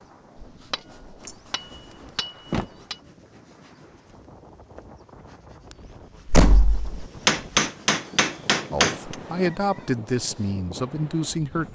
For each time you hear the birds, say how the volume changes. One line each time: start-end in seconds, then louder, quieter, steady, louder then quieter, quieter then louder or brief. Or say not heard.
not heard.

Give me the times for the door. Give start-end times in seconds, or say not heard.
1.2-2.7, 6.2-7.0.